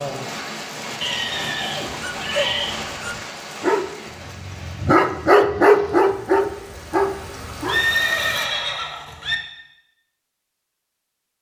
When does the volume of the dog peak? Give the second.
6 s.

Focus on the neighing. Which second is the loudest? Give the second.
8 s.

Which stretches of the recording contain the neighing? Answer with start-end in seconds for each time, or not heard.
1.0-2.8, 7.7-9.3.